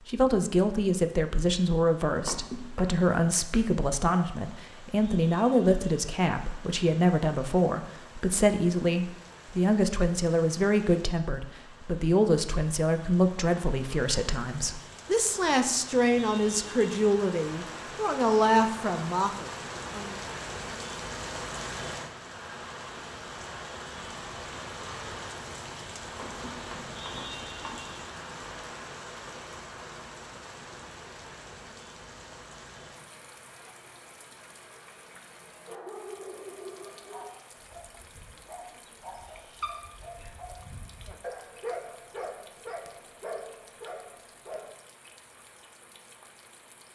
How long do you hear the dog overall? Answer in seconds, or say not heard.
9 s.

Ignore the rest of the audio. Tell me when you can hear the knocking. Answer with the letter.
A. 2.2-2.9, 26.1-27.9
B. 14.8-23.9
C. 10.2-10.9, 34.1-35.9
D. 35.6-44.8
A.